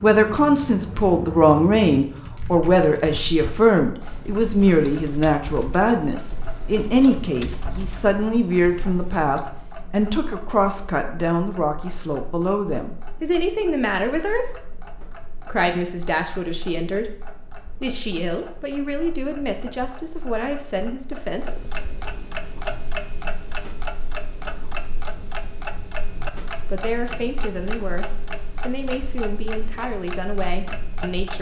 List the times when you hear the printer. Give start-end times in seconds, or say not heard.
not heard.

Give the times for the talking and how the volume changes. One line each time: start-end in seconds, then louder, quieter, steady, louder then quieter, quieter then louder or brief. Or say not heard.
0.0-14.4 quieter
15.3-21.6 steady
26.6-31.3 steady.